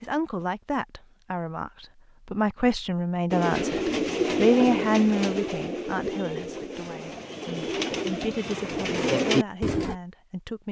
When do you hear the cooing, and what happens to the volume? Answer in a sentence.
You can hear the cooing from 3.3 to 9.9 s, getting quieter then louder.